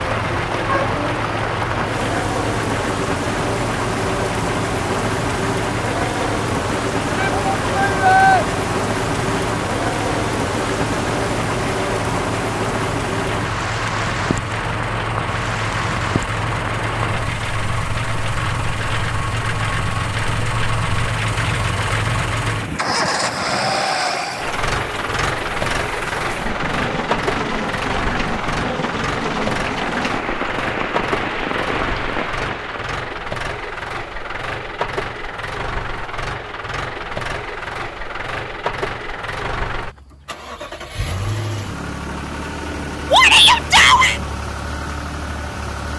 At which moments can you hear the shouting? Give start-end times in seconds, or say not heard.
7.2-8.4, 43.1-44.2.